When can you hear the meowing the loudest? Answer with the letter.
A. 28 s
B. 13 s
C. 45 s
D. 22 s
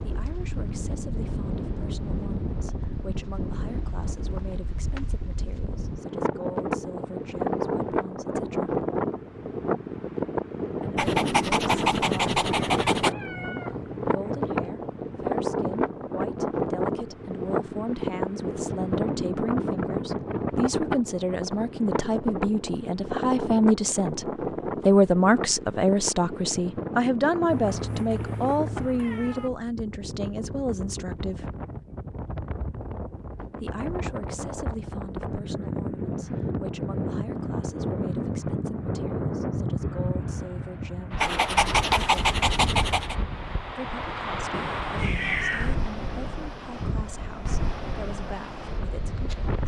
C.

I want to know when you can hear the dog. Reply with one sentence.
You can hear the dog from 10.9 to 13.2 s and from 41.2 to 43.1 s.